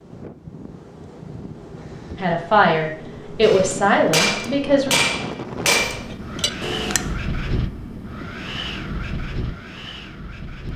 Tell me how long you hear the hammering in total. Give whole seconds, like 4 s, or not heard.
4 s.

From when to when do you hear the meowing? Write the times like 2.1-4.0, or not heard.
not heard.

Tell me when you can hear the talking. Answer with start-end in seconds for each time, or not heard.
2.1-5.0.